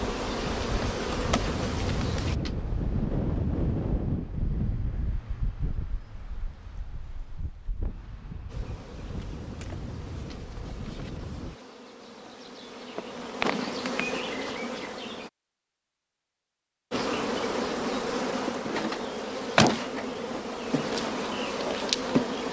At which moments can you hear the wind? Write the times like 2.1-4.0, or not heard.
0.1-11.6.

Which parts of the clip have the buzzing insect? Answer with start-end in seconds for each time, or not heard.
0.0-2.4, 8.4-15.3, 16.9-22.4.